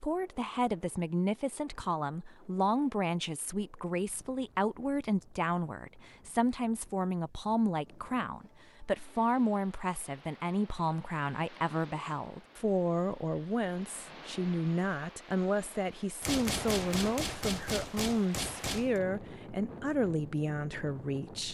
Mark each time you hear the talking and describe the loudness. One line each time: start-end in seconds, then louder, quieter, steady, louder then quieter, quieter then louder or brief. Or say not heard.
0.0-21.4 steady.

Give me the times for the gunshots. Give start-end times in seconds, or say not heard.
16.2-19.0.